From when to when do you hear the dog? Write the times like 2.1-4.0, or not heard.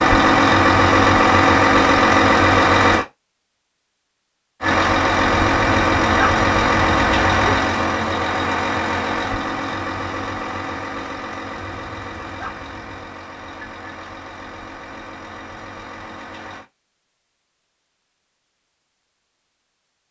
5.3-7.7, 11.6-13.2.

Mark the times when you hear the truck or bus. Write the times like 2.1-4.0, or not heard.
0.0-3.0, 4.6-16.6.